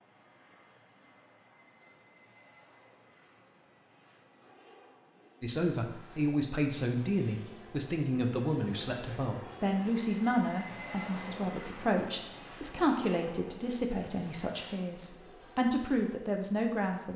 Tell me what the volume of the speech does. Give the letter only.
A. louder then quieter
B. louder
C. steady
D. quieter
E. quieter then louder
C.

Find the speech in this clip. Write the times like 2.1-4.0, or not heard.
5.4-17.1.